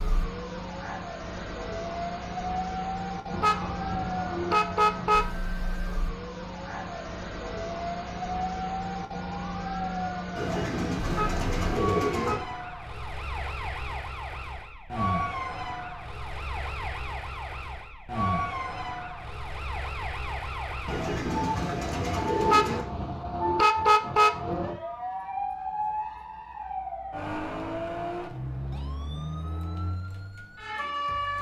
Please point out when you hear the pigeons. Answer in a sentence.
You can hear the pigeons from 10.3 to 12.3 s and from 20.9 to 22.9 s.